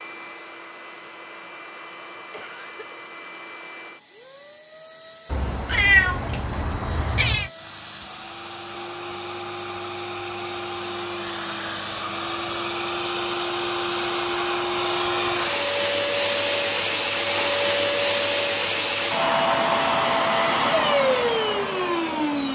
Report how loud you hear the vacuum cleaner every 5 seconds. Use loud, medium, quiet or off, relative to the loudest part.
quiet, quiet, medium, loud, loud.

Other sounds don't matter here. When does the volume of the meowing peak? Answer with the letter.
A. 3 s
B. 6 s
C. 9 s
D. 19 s
B.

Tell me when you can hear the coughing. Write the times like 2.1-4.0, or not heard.
2.3-2.9.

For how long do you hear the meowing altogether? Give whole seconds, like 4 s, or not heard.
2 s.